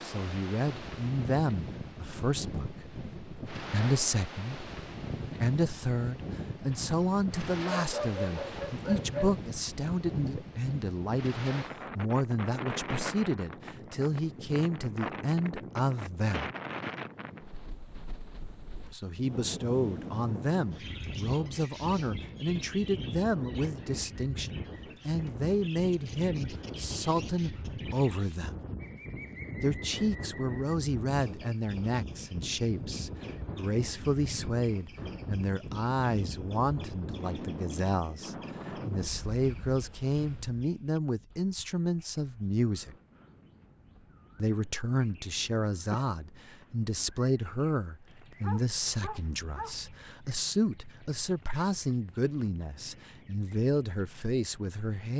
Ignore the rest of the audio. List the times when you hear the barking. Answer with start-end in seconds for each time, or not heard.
6.7-9.4, 48.4-49.9.